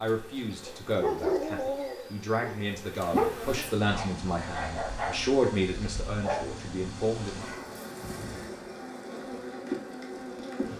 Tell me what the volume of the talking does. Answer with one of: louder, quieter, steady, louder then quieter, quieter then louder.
louder then quieter.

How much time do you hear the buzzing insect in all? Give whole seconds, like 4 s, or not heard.
11 s.